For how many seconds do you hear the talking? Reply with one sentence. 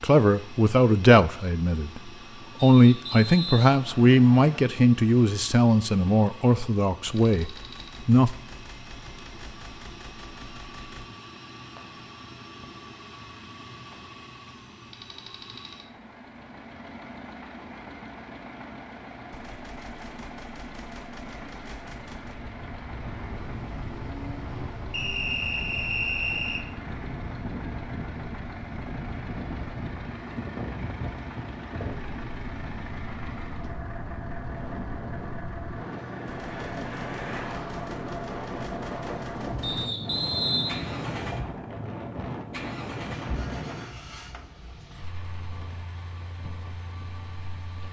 The talking can be heard for 8 seconds in total.